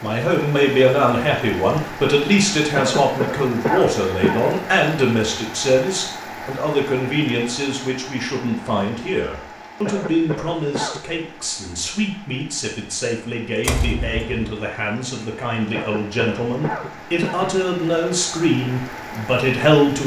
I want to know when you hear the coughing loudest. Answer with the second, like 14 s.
4 s.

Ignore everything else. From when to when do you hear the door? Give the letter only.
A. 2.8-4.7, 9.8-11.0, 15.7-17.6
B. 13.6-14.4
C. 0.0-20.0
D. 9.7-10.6
B.